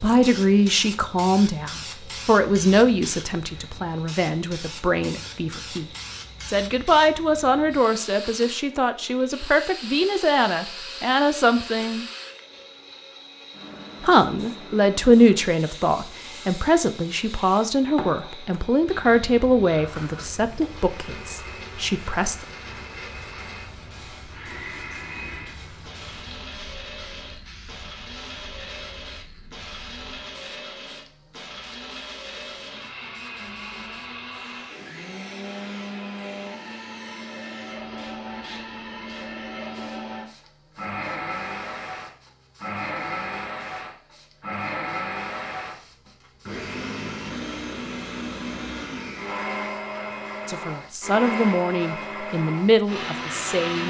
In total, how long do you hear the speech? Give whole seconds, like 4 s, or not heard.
23 s.